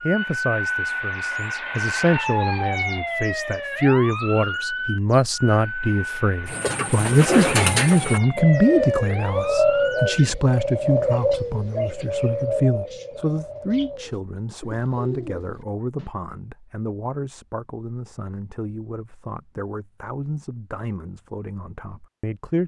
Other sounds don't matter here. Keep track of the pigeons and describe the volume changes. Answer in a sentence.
The volume of the pigeons goes down.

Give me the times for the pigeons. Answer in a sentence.
You can hear the pigeons from 6.5 to 16.1 s.